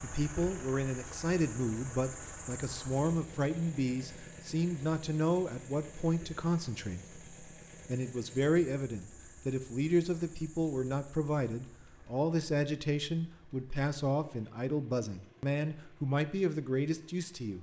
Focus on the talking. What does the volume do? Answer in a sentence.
The volume of the talking stays about the same.